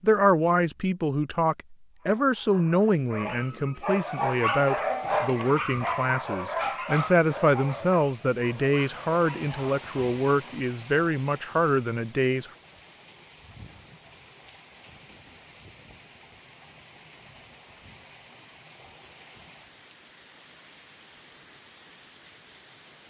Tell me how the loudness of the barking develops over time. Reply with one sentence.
The volume of the barking goes up, then down.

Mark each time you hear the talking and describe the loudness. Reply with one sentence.
The talking can be heard from 0.0 to 12.5 s, at a steady volume.